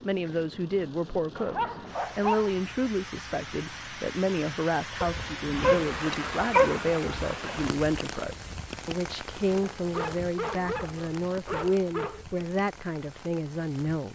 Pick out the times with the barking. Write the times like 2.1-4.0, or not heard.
1.4-2.9, 5.0-7.3, 9.6-12.2.